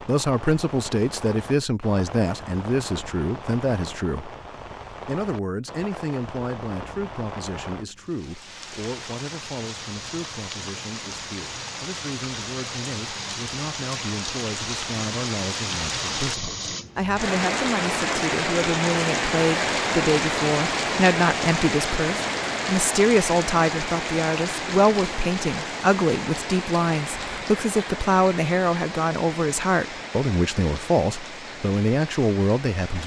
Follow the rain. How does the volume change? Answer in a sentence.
The loudness of the rain goes up, then down.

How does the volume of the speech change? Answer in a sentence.
The volume of the speech goes down, then up.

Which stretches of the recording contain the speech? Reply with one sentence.
You can hear the speech from 0.1 to 4.3 s and from 5.0 to 33.0 s.